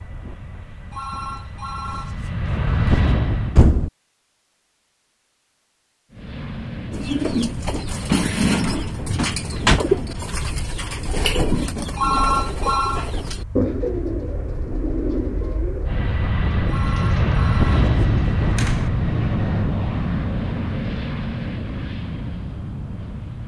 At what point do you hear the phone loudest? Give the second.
12 s.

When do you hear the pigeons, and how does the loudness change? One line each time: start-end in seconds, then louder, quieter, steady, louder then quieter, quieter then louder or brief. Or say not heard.
6.9-18.4 quieter.